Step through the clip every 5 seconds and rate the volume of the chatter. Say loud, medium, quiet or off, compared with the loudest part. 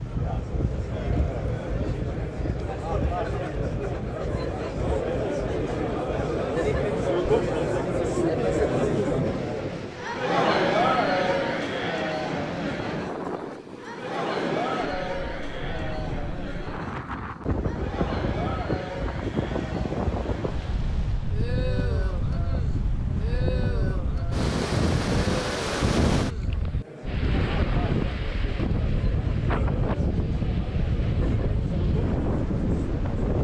medium, loud, loud, medium, quiet, quiet, quiet.